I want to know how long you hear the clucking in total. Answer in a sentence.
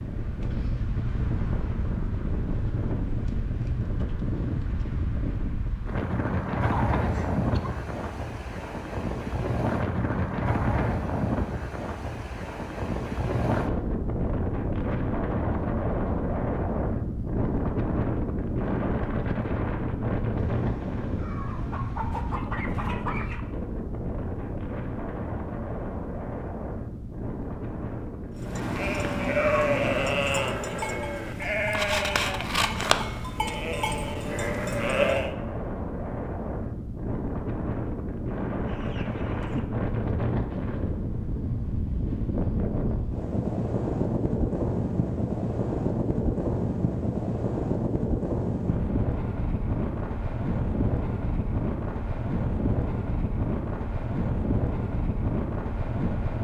The clucking can be heard for 4 seconds in total.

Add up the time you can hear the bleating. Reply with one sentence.
The bleating can be heard for 7 seconds in total.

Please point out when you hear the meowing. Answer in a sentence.
You can hear the meowing from 20.4 to 22.4 s and from 28.5 to 30.2 s.